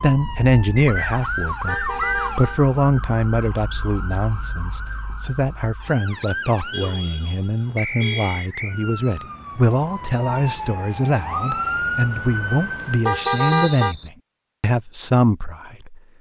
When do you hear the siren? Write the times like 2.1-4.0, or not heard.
0.0-13.2.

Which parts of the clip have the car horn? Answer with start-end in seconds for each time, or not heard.
1.6-2.6, 6.7-8.5, 13.1-13.9.